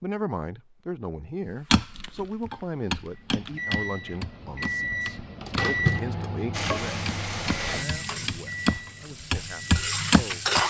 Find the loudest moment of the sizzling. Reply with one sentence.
The loudest moment of the sizzling is at 10 seconds.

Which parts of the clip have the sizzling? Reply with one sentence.
You can hear the sizzling from 6.5 to 10.6 s.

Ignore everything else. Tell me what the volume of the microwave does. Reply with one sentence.
The volume of the microwave goes up, then down.